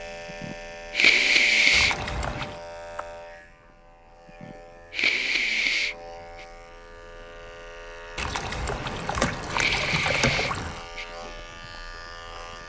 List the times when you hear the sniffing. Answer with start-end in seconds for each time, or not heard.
0.4-2.5, 4.4-6.5, 9.0-11.1.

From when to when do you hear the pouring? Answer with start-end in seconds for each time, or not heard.
1.7-2.6, 8.2-10.8.